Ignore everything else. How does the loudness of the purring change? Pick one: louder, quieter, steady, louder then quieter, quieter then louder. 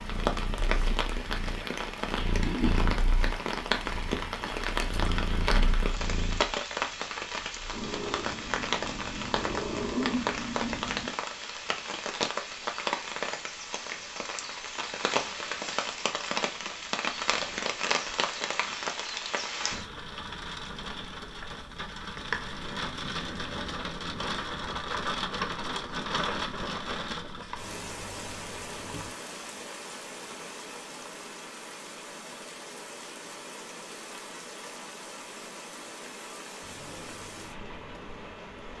louder.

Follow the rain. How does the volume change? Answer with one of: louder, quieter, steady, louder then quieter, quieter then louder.
quieter.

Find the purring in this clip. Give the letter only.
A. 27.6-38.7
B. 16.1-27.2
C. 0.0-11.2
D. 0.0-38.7
C.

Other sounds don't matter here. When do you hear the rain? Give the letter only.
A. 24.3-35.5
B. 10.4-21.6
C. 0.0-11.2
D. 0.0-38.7
D.